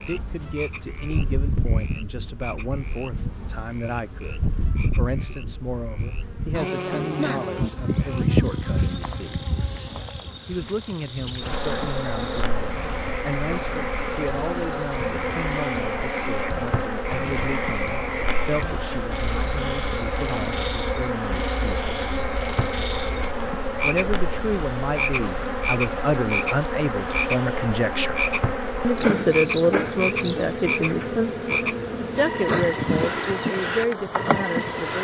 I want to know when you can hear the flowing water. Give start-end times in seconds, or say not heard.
not heard.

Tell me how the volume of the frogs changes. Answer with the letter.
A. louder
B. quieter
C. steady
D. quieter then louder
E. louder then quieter
A.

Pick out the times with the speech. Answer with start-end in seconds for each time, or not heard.
0.0-9.4, 10.4-22.1, 23.8-28.2, 28.8-34.9.